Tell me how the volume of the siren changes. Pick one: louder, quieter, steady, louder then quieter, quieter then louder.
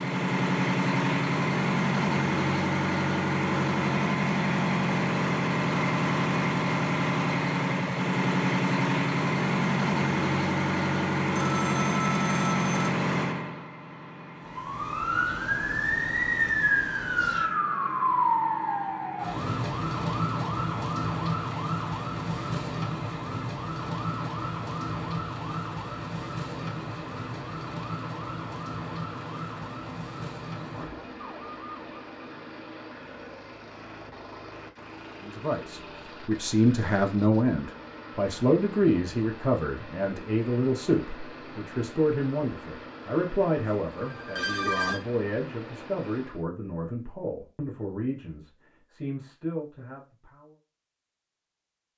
quieter.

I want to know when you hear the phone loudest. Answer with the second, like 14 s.
45 s.